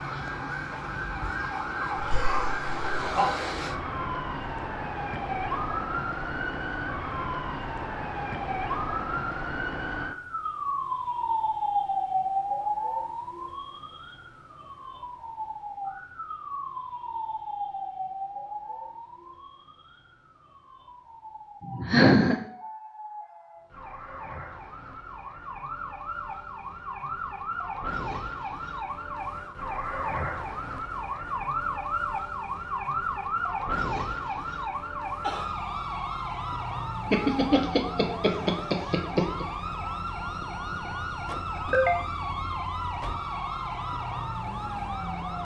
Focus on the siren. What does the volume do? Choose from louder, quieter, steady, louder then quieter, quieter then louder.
quieter then louder.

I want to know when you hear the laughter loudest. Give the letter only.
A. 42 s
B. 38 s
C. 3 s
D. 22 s
D.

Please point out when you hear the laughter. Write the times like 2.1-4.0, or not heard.
1.9-3.3, 21.7-22.4, 37.1-39.5.